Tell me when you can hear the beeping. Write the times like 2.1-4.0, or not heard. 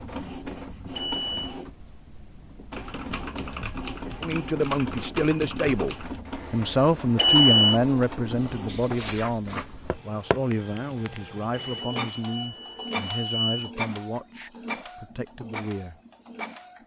0.9-1.6, 7.2-7.8, 11.7-13.7.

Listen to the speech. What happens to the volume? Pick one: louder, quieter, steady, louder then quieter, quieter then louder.
quieter.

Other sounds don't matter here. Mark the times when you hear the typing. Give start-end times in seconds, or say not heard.
2.7-6.2.